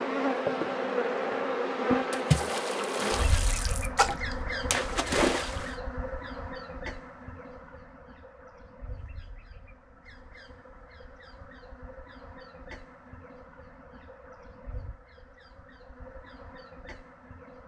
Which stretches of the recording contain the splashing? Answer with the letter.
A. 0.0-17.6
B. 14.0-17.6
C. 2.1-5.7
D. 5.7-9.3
C.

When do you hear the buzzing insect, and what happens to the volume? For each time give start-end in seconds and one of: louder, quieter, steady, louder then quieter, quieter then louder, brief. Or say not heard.
0.0-17.6 quieter.